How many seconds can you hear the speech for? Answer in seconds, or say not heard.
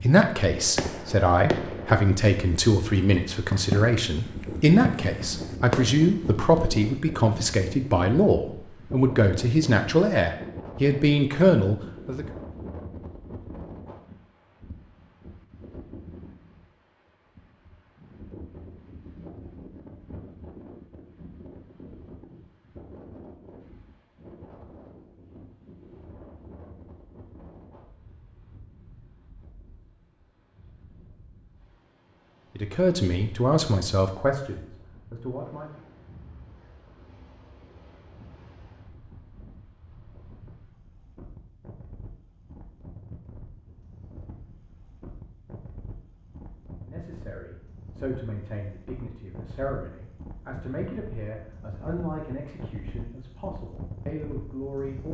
24 s.